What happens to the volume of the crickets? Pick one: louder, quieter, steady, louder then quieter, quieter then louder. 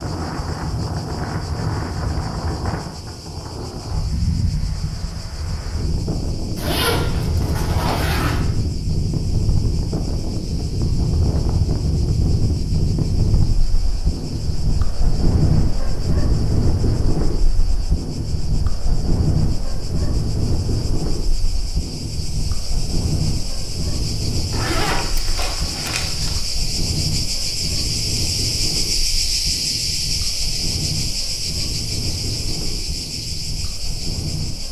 louder.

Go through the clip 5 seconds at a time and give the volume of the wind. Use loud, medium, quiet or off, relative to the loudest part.
loud, loud, loud, loud, loud, medium, medium.